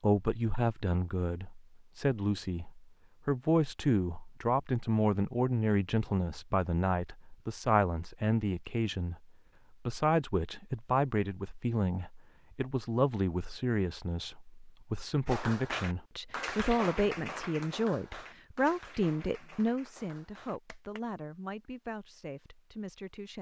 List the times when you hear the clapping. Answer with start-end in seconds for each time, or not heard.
15.2-21.0.